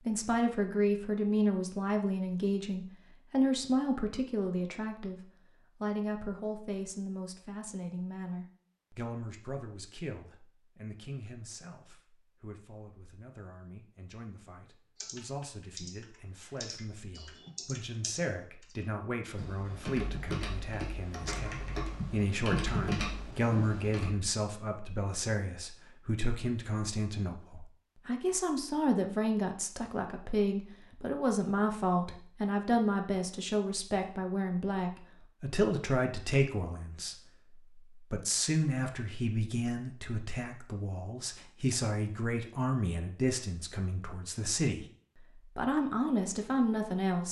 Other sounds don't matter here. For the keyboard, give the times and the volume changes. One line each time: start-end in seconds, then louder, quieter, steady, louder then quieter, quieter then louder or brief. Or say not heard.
14.9-24.1 louder.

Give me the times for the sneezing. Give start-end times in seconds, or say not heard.
not heard.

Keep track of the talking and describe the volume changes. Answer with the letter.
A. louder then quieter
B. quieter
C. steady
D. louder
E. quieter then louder
E.